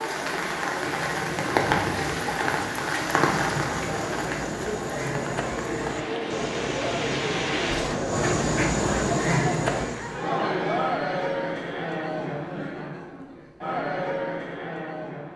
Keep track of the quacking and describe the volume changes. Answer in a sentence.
The volume of the quacking goes up.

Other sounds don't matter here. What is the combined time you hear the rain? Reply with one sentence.
The rain can be heard for 8 seconds in total.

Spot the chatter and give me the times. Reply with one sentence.
The chatter can be heard from 0.0 to 15.3 s.